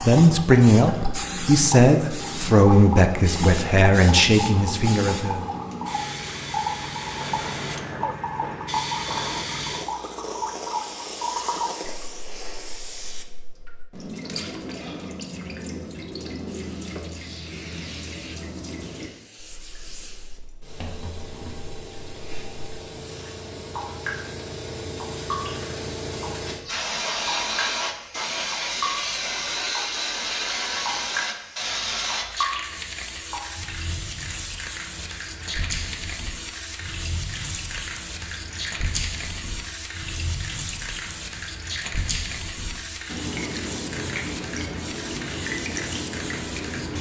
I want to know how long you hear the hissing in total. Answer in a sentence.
You can hear the hissing for 44 seconds altogether.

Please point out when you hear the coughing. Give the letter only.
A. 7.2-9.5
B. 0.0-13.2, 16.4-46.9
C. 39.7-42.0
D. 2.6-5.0
A.